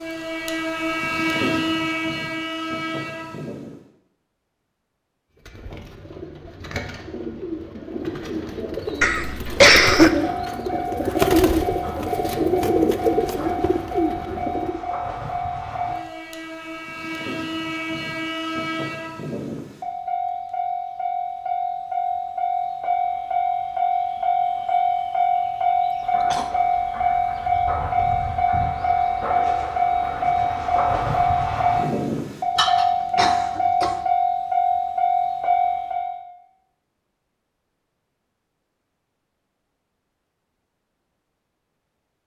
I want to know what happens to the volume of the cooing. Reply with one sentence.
The volume of the cooing goes up.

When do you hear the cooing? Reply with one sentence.
The cooing can be heard from 5.5 to 14.8 s.